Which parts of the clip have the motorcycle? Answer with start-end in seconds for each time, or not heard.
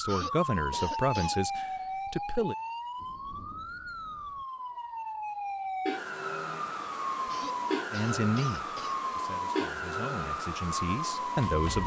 not heard.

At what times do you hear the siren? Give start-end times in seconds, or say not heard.
0.0-11.8.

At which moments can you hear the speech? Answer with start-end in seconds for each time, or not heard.
0.0-2.5, 7.9-11.8.